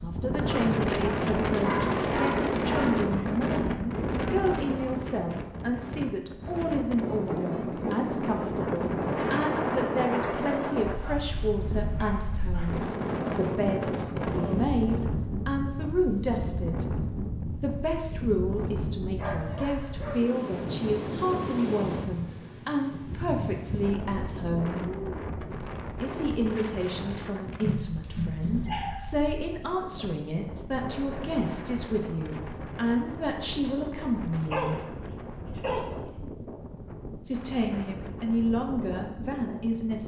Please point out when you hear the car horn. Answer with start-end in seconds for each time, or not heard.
not heard.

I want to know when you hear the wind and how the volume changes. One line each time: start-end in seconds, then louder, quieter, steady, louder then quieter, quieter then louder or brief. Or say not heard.
0.0-40.0 quieter.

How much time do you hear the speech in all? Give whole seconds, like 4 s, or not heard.
36 s.